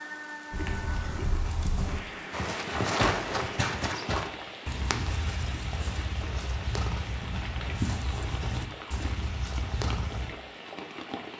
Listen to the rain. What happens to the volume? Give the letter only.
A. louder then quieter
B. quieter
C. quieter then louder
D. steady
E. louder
D.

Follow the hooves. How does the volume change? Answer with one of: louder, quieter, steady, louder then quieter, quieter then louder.
louder then quieter.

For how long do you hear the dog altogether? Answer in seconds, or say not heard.
not heard.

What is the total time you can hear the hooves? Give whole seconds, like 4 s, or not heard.
10 s.